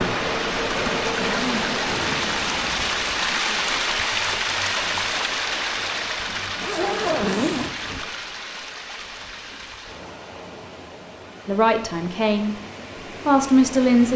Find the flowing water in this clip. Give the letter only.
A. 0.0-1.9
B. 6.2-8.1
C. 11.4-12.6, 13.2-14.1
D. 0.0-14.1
D.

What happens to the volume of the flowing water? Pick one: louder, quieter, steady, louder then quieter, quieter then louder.
quieter.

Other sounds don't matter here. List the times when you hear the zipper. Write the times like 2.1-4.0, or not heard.
6.2-8.1.